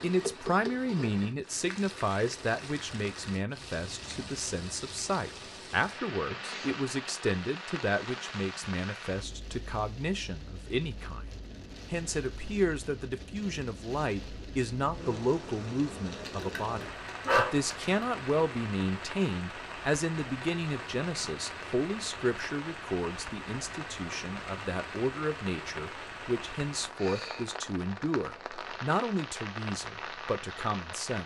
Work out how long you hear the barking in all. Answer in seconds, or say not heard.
2 s.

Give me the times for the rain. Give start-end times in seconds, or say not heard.
0.0-31.2.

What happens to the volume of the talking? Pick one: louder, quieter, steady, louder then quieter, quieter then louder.
steady.